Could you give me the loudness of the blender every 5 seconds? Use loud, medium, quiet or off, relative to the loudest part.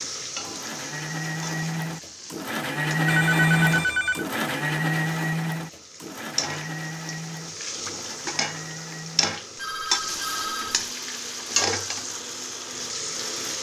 loud, medium, quiet.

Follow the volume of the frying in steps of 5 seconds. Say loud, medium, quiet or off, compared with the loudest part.
medium, loud, loud.